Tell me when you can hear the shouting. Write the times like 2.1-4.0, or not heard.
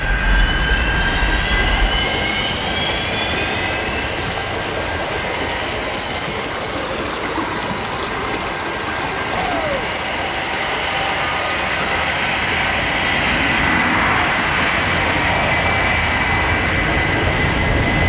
9.3-9.9.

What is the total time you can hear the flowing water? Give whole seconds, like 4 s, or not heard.
18 s.